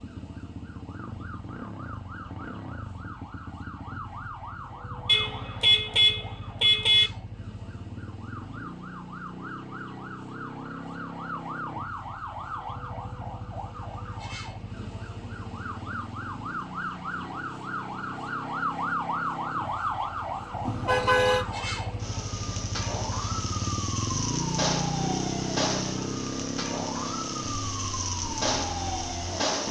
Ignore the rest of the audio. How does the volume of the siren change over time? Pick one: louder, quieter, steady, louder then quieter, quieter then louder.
louder.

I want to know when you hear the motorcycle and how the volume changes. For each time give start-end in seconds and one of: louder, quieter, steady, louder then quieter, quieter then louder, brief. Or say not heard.
0.0-29.6 louder.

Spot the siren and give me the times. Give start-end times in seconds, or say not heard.
0.0-29.6.